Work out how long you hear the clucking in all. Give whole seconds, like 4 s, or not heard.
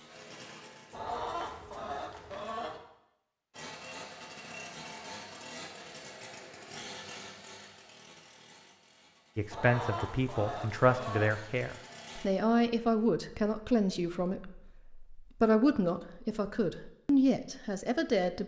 4 s.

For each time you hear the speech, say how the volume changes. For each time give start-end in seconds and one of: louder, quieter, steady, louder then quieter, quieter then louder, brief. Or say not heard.
9.3-18.4 steady.